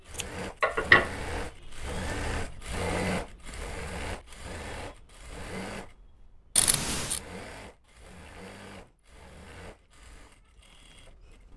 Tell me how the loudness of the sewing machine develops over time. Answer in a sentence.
The volume of the sewing machine goes down.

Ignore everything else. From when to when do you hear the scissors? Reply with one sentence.
You can hear the scissors from 0.1 to 1.1 s and from 6.5 to 7.2 s.